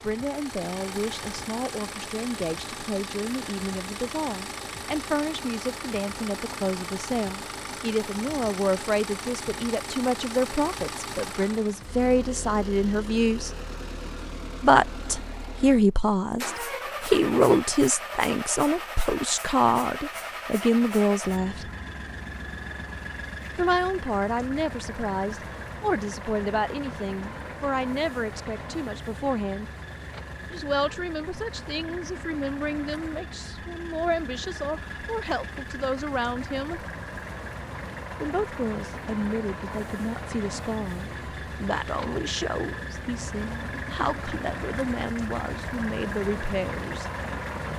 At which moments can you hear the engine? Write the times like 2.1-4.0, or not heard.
0.0-47.7.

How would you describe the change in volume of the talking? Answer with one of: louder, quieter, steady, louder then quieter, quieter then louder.
louder then quieter.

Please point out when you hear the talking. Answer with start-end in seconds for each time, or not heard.
0.0-13.6, 14.6-21.6, 23.6-29.7, 30.5-36.9, 38.2-47.1.